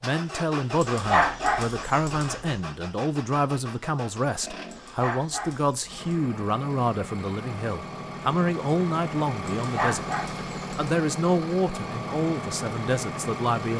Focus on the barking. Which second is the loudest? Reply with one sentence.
The loudest moment of the barking is at 1 second.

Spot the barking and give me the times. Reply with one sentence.
You can hear the barking from 0.8 to 2.5 s, from 4.7 to 6.2 s and from 9.6 to 10.9 s.